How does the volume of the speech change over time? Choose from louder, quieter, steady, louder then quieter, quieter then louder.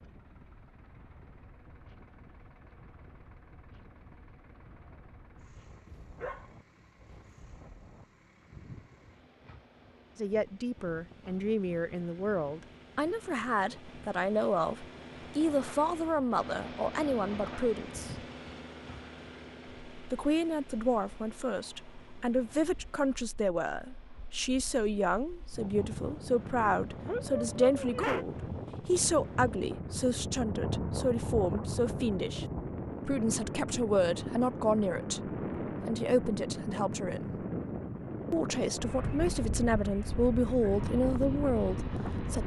steady.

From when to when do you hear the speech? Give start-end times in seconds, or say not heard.
10.2-18.1, 20.1-32.5, 33.0-37.3, 38.3-42.4.